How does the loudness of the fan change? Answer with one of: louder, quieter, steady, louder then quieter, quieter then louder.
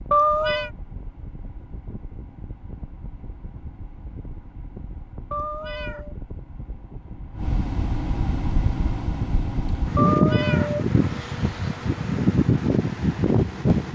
louder.